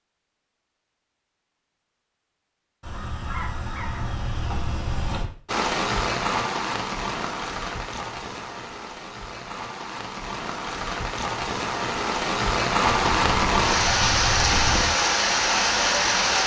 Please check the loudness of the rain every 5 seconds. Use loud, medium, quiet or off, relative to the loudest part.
off, medium, loud, loud.